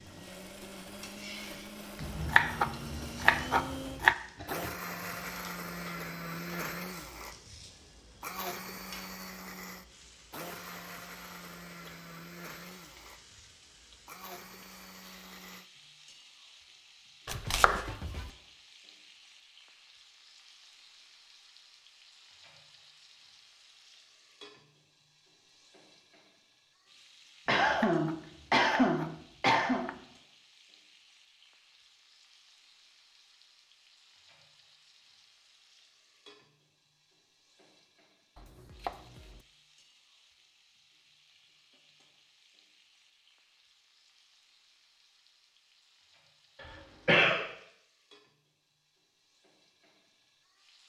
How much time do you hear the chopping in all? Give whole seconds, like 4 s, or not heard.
7 s.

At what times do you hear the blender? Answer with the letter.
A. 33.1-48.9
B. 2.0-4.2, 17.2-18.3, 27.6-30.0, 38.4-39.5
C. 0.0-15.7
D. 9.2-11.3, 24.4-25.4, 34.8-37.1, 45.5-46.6
C.